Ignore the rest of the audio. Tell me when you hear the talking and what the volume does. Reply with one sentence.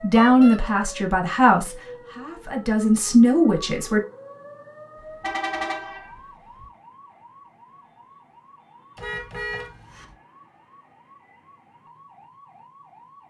You can hear the talking from 0.0 to 4.0 s, getting quieter then louder.